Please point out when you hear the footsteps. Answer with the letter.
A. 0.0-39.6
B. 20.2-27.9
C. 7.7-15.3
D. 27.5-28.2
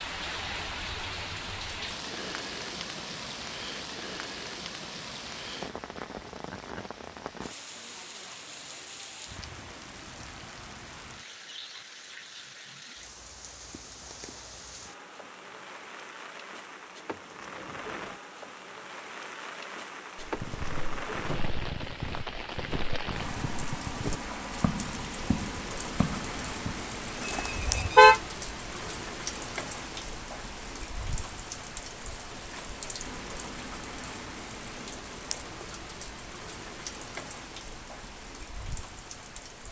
B.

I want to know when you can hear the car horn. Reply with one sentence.
You can hear the car horn from 27.5 to 28.2 s.